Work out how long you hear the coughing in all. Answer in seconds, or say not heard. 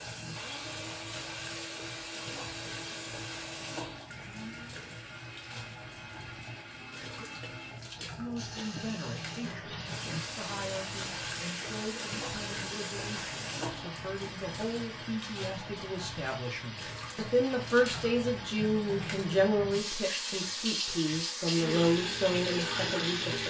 2 s.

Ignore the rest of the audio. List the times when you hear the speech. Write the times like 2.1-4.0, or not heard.
8.2-23.4.